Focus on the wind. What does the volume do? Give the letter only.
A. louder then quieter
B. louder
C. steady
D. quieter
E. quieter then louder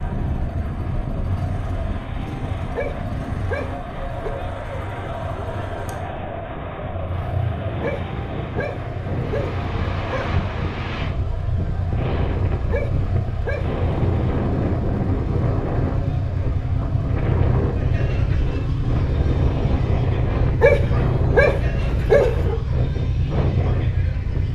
B.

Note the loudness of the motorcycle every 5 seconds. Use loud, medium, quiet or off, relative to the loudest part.
medium, medium, medium, loud, loud.